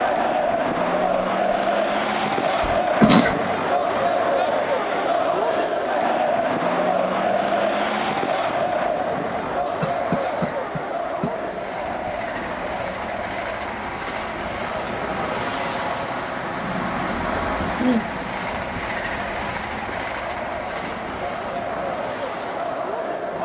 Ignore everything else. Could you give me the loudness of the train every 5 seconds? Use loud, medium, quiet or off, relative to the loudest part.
quiet, quiet, medium, loud, medium.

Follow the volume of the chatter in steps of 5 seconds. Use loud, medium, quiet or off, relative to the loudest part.
loud, loud, medium, quiet, medium.